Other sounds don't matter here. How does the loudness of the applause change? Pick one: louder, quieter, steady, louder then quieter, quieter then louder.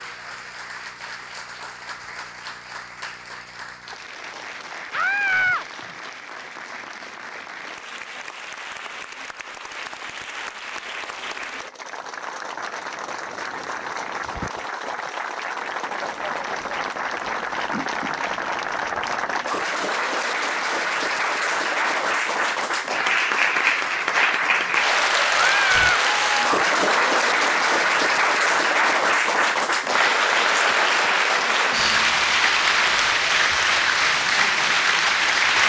louder.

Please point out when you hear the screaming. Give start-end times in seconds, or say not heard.
4.9-5.7, 25.3-26.1.